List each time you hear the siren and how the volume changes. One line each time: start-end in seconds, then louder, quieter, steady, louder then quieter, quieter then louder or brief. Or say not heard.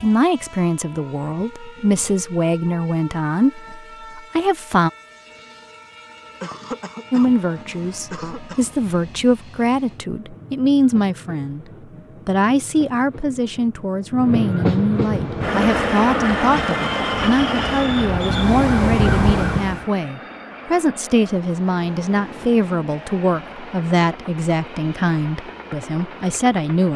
15.2-19.9 louder.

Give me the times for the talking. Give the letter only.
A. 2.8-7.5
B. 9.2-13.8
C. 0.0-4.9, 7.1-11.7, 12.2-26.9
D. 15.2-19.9
C.